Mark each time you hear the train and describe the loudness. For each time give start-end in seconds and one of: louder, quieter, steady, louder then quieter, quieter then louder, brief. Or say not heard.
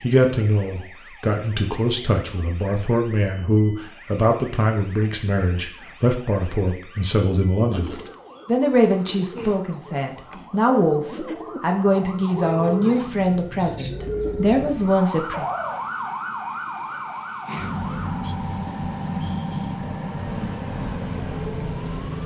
14.7-22.2 louder.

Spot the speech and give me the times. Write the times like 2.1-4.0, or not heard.
0.0-15.4.